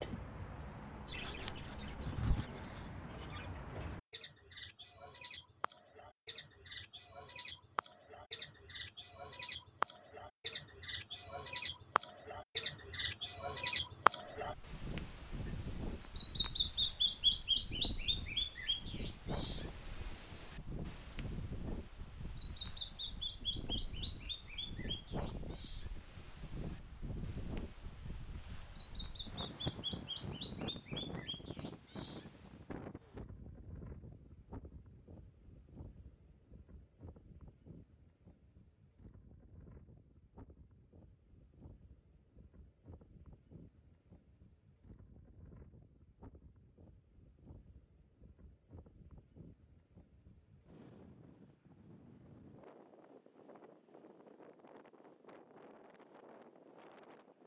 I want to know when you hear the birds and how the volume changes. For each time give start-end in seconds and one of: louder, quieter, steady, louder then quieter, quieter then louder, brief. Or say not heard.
0.0-32.6 louder then quieter.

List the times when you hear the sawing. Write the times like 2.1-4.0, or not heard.
1.1-2.9.